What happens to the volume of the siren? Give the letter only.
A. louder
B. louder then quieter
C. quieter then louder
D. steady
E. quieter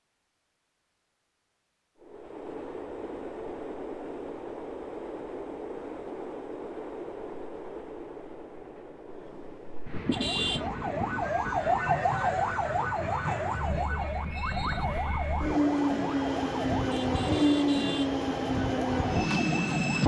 E.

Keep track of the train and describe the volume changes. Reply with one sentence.
The loudness of the train goes up.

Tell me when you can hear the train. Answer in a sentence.
You can hear the train from 2.0 to 20.0 s.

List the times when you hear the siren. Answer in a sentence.
You can hear the siren from 10.1 to 20.0 s.